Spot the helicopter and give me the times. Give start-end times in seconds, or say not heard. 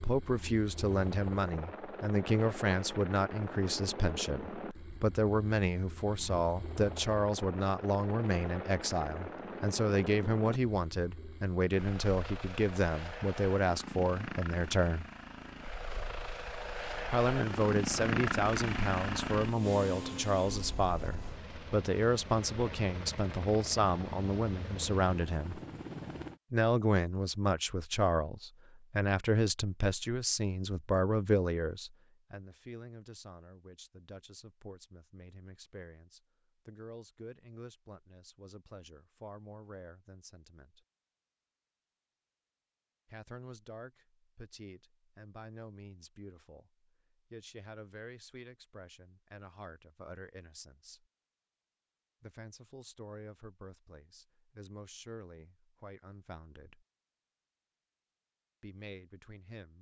0.0-26.4.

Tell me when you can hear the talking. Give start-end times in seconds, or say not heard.
0.0-15.1, 17.1-25.6, 26.5-40.9, 43.0-51.0, 52.2-56.9, 58.6-59.7.